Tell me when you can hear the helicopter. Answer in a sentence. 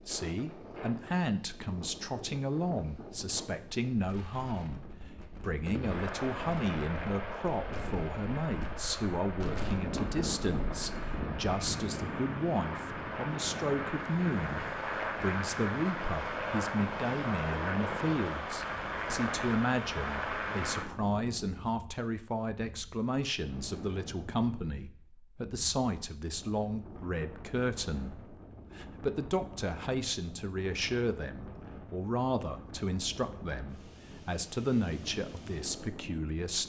The helicopter can be heard from 5.6 to 20.9 s.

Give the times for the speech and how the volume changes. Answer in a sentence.
The speech can be heard from 0.1 to 36.6 s, at a steady volume.